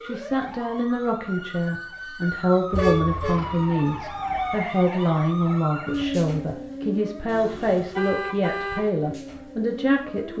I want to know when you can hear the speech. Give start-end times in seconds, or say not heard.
0.0-10.3.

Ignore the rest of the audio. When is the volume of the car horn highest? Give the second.
3 s.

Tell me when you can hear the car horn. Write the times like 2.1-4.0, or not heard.
2.7-3.4, 7.2-8.9.